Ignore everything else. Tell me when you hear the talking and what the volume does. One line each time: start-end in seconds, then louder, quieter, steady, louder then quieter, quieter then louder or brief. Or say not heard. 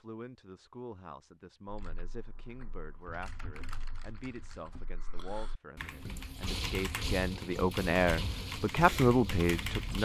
0.0-9.9 louder.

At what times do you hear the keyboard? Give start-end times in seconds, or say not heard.
1.6-9.9.